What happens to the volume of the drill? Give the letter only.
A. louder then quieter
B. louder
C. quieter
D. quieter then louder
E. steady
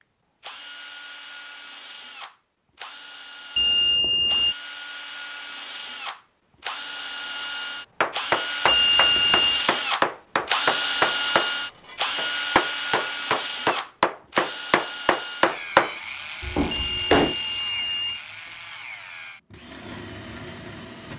A.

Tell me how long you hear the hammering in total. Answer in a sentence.
You can hear the hammering for 9 seconds altogether.